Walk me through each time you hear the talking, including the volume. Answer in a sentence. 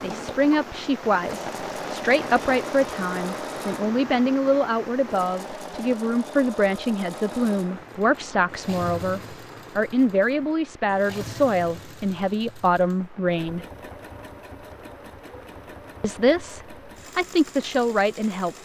You can hear the talking from 0.0 to 13.7 s, at a steady volume; and briefly from 16.0 to 18.5 s.